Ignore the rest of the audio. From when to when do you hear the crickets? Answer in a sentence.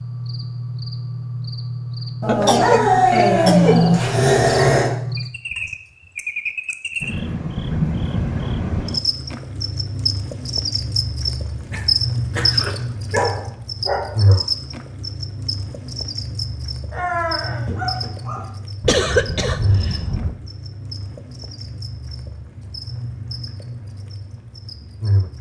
You can hear the crickets from 0.0 to 25.3 s.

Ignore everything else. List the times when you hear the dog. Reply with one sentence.
You can hear the dog from 2.2 to 4.9 s, from 12.3 to 14.3 s and from 16.9 to 18.5 s.